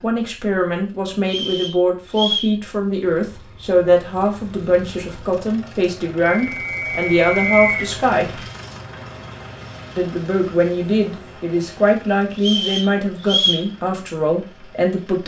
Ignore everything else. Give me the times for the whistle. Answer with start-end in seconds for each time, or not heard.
1.2-2.5, 6.2-7.8, 12.4-13.7.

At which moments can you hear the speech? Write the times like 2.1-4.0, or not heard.
0.0-8.4, 9.9-15.2.